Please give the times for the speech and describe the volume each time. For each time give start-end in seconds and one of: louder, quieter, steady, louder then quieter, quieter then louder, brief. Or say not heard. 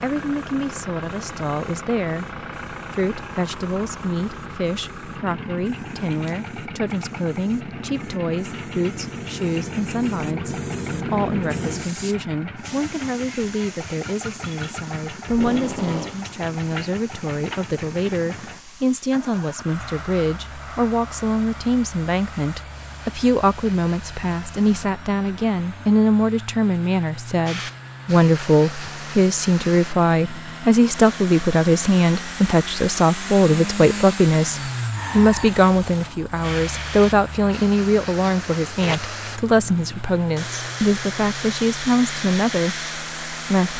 0.0-43.7 louder.